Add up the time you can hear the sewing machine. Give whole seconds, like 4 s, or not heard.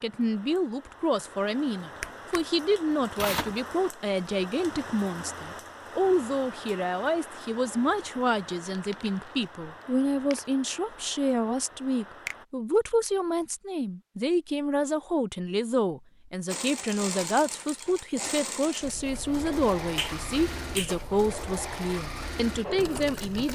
7 s.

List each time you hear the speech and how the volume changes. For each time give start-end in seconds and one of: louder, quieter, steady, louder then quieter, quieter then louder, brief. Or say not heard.
0.0-23.5 steady.